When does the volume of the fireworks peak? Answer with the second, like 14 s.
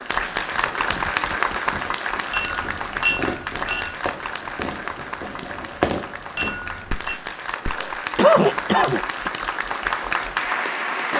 6 s.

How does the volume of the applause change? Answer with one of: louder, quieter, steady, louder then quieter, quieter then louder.
quieter then louder.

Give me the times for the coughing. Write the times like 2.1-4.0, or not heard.
7.7-9.3.